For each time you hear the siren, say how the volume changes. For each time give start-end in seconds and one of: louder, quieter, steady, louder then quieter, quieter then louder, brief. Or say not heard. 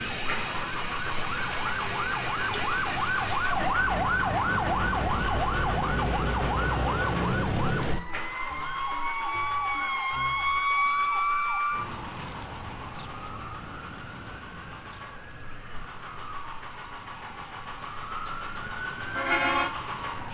0.0-20.2 quieter then louder.